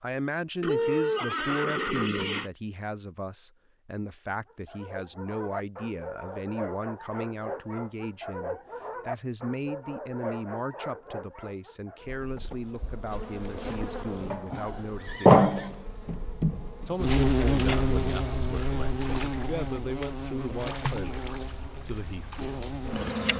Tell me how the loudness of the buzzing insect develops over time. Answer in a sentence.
The loudness of the buzzing insect goes up, then down.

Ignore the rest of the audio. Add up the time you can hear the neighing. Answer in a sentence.
The neighing can be heard for 3 seconds in total.